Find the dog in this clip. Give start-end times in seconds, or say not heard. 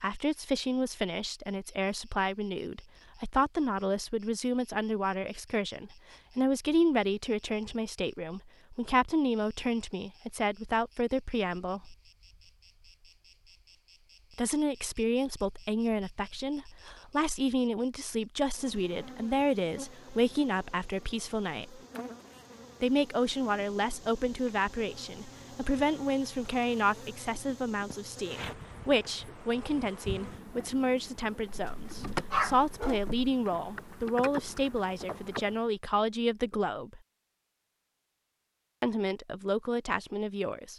31.5-33.3.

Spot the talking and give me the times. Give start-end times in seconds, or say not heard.
0.0-11.9, 14.3-21.8, 22.8-37.0, 38.8-40.7.